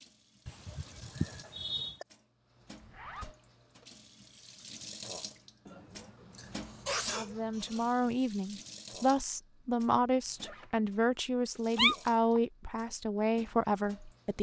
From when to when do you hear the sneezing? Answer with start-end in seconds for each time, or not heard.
0.5-2.0, 5.7-7.9, 11.8-12.4.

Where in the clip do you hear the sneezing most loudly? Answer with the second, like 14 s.
12 s.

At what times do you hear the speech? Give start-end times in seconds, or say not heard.
7.1-14.3.